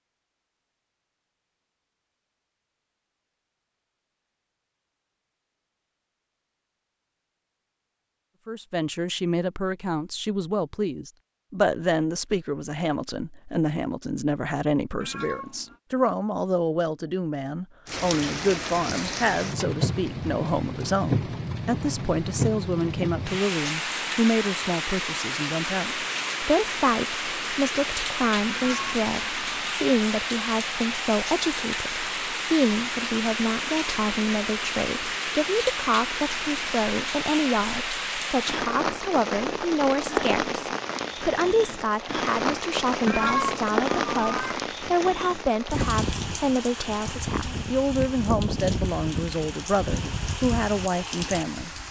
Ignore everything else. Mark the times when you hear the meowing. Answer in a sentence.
The meowing can be heard from 15.0 to 15.8 s, from 28.4 to 29.8 s and from 43.0 to 44.5 s.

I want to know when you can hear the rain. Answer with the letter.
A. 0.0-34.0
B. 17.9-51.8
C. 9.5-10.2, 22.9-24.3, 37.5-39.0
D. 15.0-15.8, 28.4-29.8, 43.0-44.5
B.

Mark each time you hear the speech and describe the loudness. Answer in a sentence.
The speech can be heard from 8.4 to 51.7 s, at a steady volume.